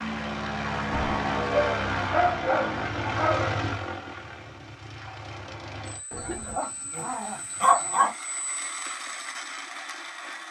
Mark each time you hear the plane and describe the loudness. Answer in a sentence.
The plane can be heard from 0.0 to 10.4 s, getting quieter then louder.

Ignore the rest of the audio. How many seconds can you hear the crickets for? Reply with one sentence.
You can't hear the crickets here.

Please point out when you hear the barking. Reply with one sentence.
You can hear the barking from 0.9 to 3.5 s and from 6.1 to 8.1 s.